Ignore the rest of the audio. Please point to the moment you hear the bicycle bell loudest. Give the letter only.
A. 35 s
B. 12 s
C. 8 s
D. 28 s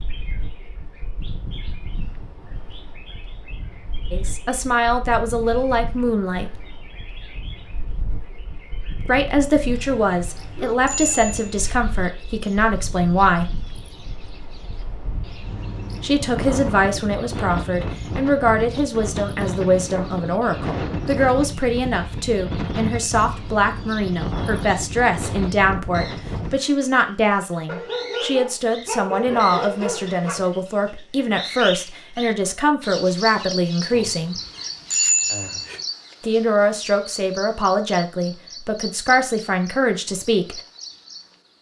A.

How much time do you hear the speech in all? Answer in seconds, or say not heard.
30 s.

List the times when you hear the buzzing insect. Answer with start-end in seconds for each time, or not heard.
not heard.